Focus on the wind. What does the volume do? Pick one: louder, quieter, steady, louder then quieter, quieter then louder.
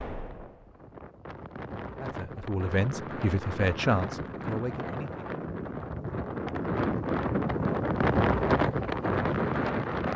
louder.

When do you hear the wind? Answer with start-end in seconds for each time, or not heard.
0.0-10.1.